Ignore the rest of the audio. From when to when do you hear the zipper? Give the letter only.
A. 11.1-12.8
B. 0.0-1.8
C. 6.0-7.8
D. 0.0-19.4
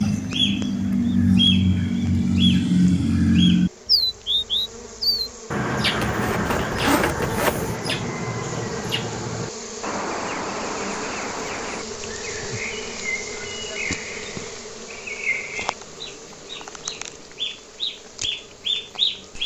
C.